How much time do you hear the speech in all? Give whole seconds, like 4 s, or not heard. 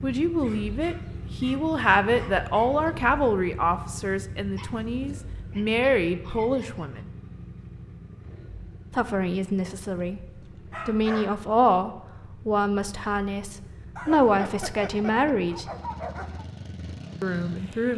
14 s.